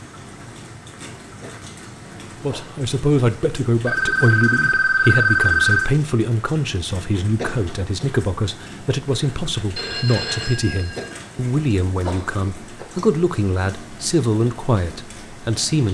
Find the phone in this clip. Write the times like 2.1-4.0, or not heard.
3.9-5.9, 9.8-11.1.